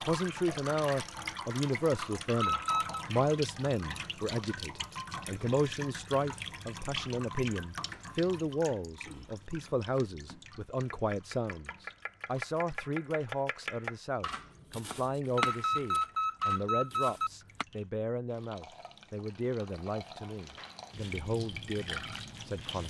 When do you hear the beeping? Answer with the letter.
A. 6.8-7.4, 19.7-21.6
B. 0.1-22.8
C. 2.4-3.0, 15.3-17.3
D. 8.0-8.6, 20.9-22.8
C.